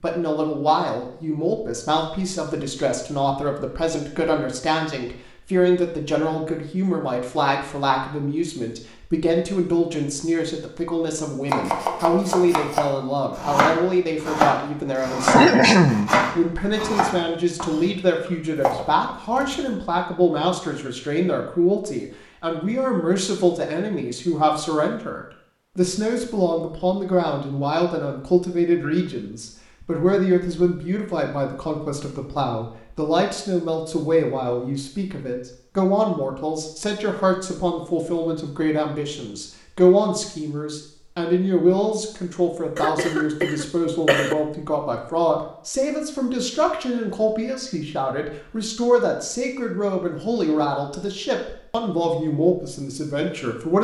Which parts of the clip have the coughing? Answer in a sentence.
You can hear the coughing from 15.3 to 16.1 s and from 42.8 to 44.4 s.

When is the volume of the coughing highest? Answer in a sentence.
The loudest moment of the coughing is at 16 seconds.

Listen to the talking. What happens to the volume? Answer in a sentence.
The loudness of the talking stays about the same.